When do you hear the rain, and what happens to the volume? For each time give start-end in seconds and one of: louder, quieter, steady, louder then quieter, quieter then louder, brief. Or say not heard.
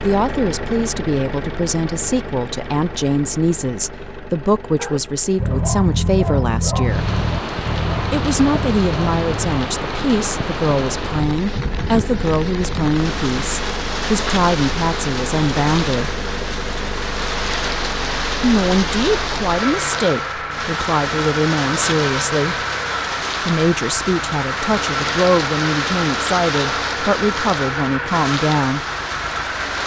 6.8-29.8 steady.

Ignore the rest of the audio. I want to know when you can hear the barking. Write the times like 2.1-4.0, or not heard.
4.8-9.7.